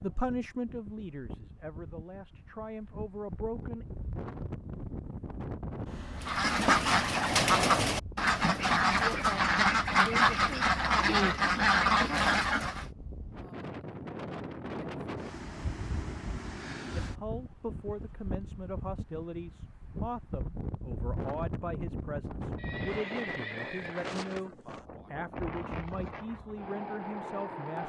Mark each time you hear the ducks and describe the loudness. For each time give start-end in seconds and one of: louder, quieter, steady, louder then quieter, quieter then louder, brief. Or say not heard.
6.2-12.8 steady.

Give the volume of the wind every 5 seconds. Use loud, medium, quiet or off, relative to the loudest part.
medium, loud, loud, loud, loud, loud.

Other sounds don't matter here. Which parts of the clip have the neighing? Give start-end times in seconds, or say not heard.
22.6-24.1.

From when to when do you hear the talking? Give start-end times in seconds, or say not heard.
0.0-3.9, 8.9-11.2, 16.9-27.8.